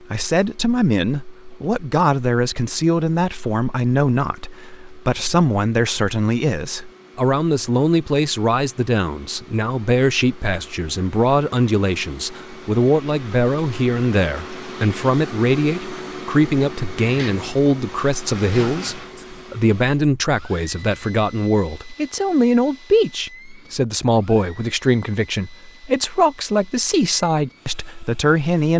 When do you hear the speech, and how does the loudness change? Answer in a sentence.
You can hear the speech from 0.1 to 28.7 s, at a steady volume.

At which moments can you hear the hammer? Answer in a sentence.
You can't hear the hammer here.